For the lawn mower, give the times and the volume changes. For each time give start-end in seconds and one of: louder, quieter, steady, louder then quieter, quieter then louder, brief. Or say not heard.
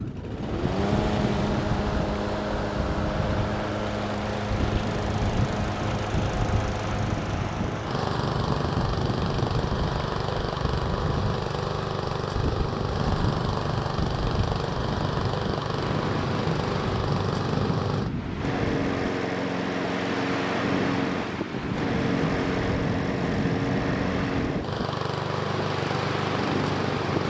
0.0-27.2 steady.